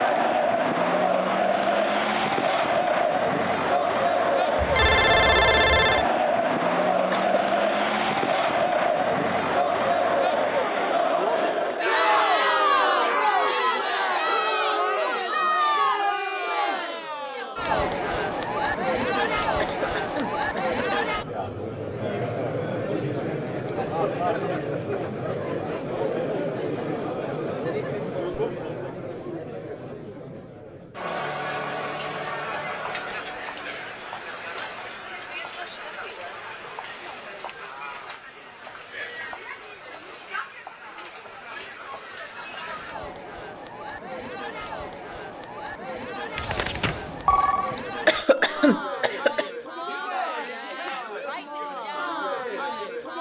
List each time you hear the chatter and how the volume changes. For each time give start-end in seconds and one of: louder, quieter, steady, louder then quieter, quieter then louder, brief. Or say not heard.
0.0-53.1 quieter.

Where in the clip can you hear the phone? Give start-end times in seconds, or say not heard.
4.5-6.0, 46.4-47.8.